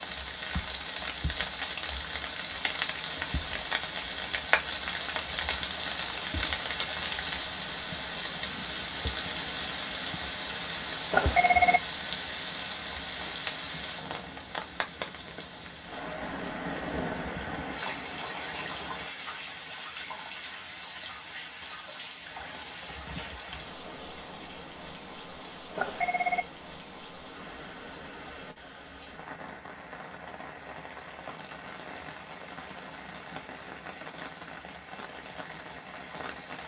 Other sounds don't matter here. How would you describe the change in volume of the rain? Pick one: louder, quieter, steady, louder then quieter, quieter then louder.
quieter.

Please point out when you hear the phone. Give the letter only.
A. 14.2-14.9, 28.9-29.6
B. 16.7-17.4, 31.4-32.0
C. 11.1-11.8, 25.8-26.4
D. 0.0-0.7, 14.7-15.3
C.